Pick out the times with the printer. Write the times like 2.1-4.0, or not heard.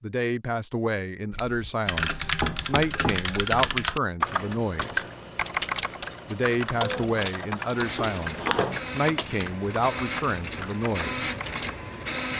7.7-12.3.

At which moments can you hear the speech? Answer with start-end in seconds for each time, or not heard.
0.0-5.0, 6.2-11.3.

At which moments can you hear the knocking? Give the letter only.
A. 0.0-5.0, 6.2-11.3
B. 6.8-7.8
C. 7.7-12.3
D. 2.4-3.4
D.